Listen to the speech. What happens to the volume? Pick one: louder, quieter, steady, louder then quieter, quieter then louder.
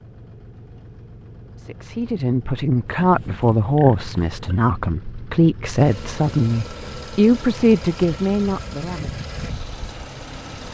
steady.